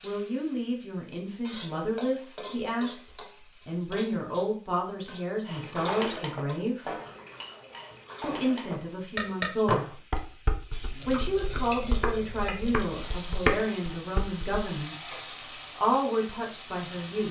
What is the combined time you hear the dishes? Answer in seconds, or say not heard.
9 s.